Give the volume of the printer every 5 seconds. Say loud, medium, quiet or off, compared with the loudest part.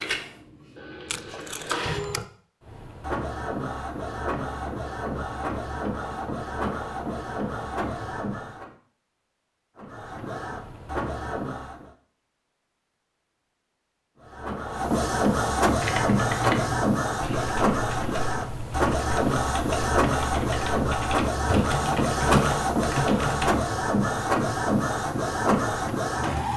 medium, medium, medium, loud, loud, loud.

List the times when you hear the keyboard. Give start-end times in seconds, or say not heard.
15.8-23.5.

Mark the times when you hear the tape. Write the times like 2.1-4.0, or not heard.
1.1-2.2.